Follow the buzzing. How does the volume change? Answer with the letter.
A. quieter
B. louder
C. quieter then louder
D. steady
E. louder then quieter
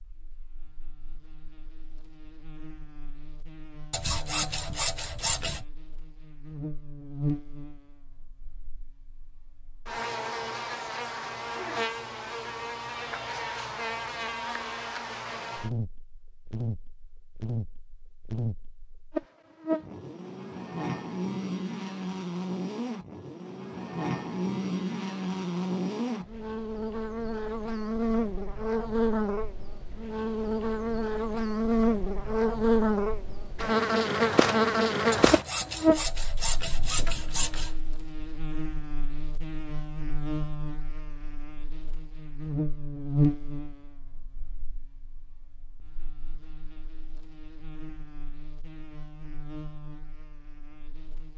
E.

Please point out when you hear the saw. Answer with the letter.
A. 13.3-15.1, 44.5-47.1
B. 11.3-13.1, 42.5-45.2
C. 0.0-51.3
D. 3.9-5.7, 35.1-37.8
D.